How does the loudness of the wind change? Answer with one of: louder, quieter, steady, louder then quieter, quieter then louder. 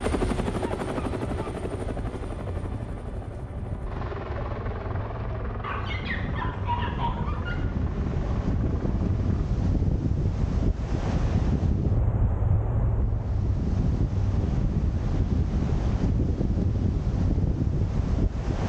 louder.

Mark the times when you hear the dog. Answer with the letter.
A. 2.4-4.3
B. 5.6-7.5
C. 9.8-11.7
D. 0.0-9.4
B.